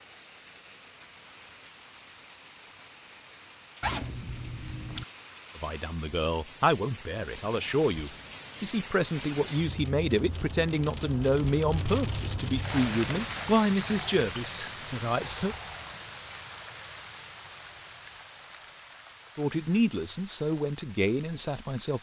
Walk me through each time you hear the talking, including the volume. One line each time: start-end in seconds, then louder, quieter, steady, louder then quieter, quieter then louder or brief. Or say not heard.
5.5-15.6 steady
19.4-21.9 brief.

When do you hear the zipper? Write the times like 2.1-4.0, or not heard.
3.8-5.0.